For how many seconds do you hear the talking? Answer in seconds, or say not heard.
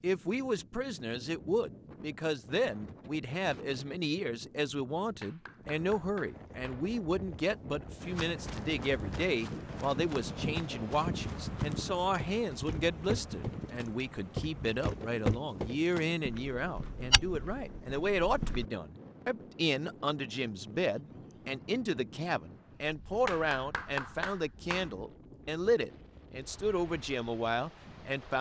28 s.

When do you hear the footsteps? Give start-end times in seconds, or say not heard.
8.0-18.6.